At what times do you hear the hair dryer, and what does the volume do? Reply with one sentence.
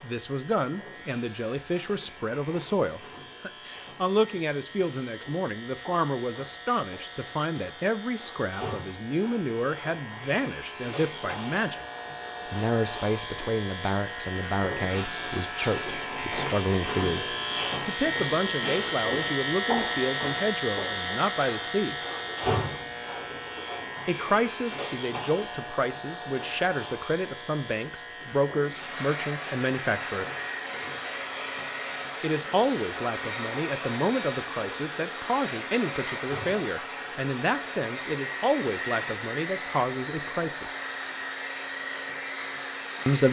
You can hear the hair dryer from 28.7 to 43.2 s, at a steady volume.